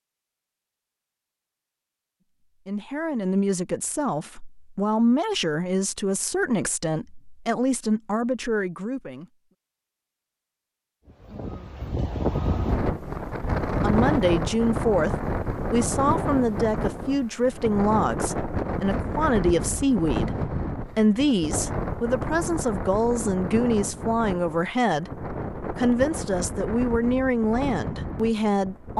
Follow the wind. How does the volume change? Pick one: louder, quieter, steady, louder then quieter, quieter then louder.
quieter.